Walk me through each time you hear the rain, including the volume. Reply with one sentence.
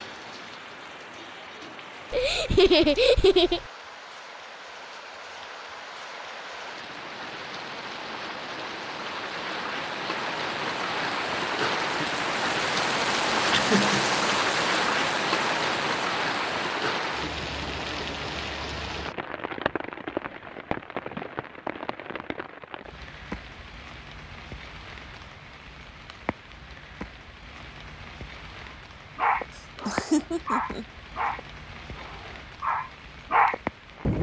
You can hear the rain from 0.0 to 34.1 s, getting louder then quieter.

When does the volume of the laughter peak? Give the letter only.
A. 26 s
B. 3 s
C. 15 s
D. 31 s
B.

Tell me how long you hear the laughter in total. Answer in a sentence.
The laughter can be heard for 4 seconds in total.